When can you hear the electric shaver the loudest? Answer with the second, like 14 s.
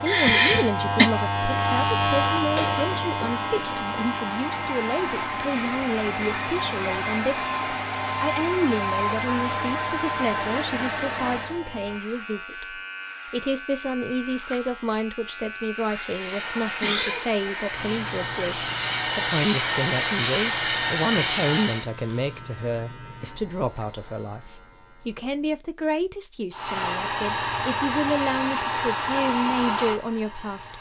2 s.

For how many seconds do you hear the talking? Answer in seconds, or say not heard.
31 s.